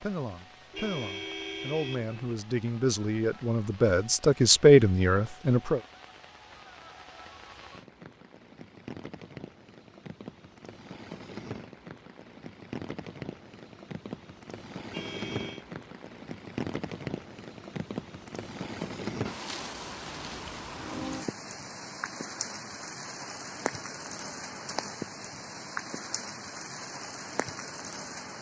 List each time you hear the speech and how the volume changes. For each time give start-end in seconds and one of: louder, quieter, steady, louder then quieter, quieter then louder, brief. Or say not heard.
0.0-5.8 louder.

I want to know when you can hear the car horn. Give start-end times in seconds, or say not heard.
0.7-2.4, 14.9-15.7.